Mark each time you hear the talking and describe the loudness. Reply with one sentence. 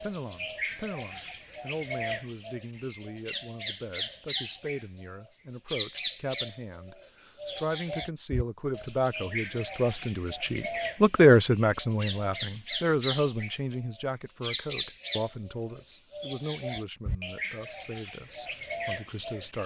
You can hear the talking from 0.0 to 19.6 s, getting louder then quieter.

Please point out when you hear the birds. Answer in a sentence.
You can hear the birds from 0.0 to 4.8 s and from 5.7 to 19.6 s.